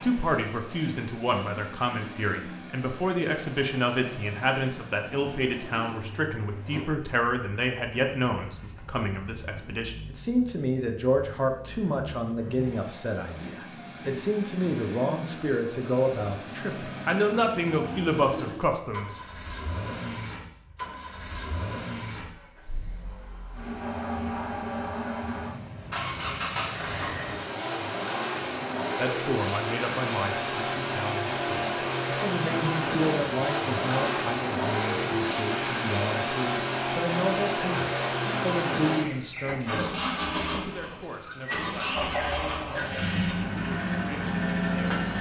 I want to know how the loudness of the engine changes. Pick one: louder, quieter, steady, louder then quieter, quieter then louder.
louder.